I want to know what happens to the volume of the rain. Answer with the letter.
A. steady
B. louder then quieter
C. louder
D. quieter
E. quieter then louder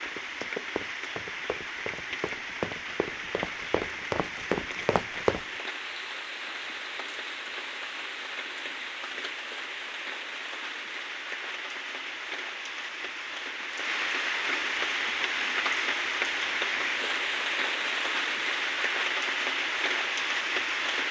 C.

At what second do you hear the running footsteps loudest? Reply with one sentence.
The loudest moment of the running footsteps is at 5 seconds.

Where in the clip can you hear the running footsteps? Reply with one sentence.
You can hear the running footsteps from 0.0 to 5.5 s.